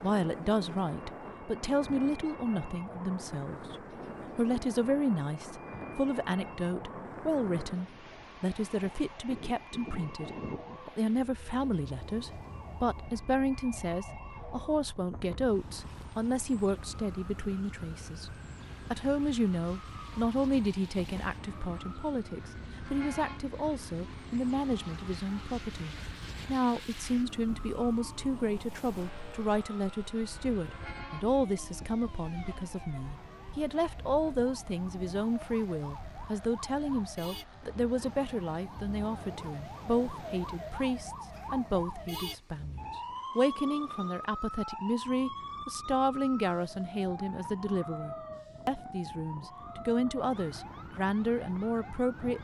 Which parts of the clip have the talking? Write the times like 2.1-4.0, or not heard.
0.0-3.8, 4.3-18.3, 18.9-52.4.